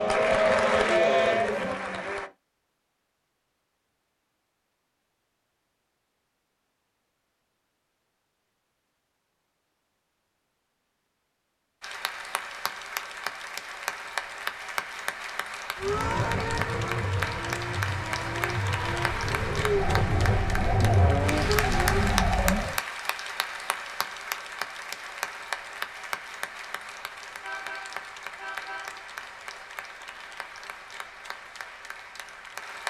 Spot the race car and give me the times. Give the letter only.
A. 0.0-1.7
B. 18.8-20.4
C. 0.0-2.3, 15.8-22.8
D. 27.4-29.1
C.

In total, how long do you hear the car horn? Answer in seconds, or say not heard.
2 s.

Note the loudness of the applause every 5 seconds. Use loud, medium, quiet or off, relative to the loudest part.
loud, off, loud, loud, loud, medium, medium.